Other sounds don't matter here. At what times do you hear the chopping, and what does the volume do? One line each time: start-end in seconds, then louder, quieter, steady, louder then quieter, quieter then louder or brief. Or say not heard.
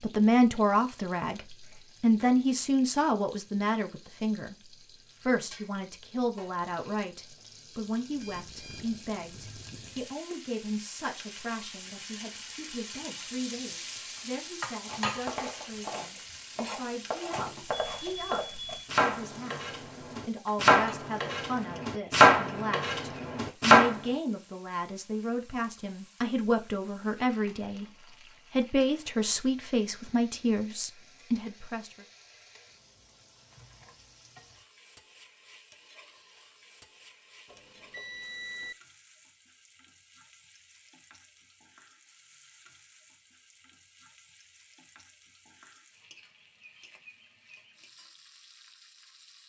14.8-23.9 louder.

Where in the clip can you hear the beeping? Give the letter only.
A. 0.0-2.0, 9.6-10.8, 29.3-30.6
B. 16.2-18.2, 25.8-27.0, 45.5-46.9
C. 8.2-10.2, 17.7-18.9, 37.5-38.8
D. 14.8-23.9
C.